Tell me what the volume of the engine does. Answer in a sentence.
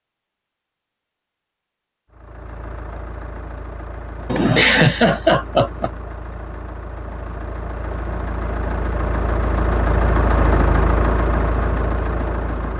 The loudness of the engine goes up.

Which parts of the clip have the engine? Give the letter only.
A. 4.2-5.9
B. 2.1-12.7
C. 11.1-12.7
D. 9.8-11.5
B.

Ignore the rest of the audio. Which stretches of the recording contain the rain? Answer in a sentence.
The rain can't be heard in this clip.